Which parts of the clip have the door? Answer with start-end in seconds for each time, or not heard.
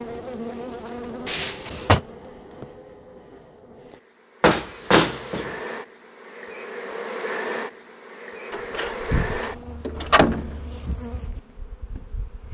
1.2-2.0, 4.4-5.5, 8.5-10.6.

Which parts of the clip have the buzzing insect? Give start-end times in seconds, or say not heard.
0.0-12.5.